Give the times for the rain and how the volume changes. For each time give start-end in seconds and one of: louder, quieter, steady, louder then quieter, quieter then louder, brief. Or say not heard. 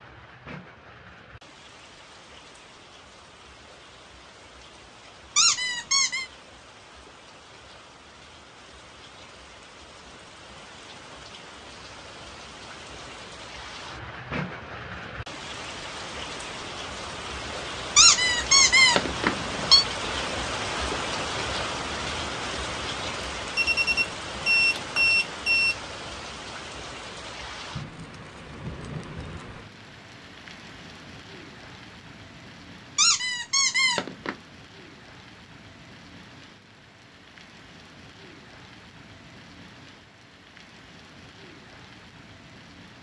0.0-42.9 louder then quieter.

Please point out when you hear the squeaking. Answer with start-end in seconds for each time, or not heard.
5.3-6.2, 17.9-19.9, 33.0-34.4.